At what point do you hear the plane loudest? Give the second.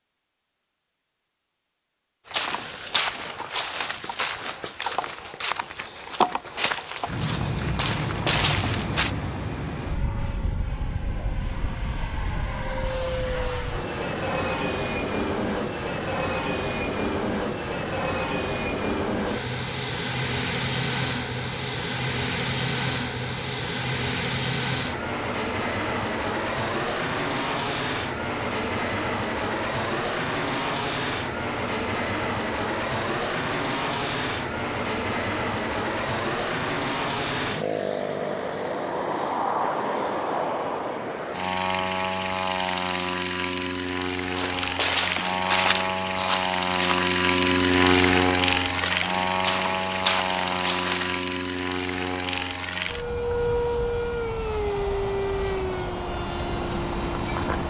48 s.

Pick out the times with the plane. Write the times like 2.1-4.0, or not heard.
7.0-57.6.